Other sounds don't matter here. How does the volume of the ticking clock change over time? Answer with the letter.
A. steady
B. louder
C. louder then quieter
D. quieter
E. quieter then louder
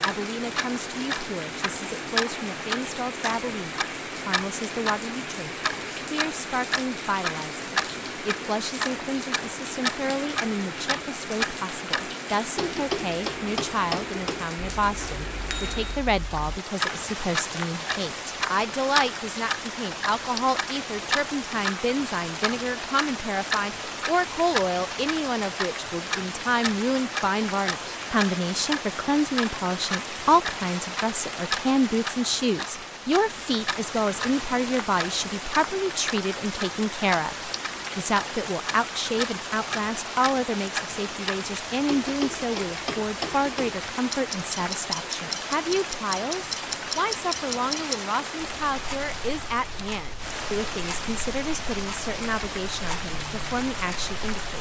D.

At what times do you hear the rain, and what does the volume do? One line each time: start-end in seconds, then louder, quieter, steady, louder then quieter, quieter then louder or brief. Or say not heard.
0.0-54.5 steady.